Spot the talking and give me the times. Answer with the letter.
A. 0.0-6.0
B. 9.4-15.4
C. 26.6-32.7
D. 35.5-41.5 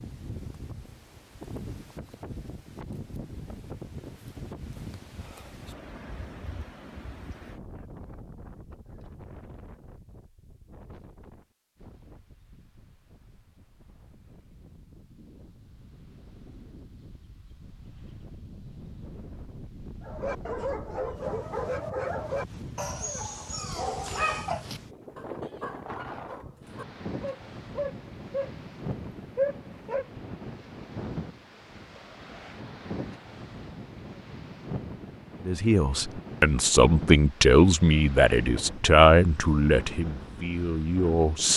D.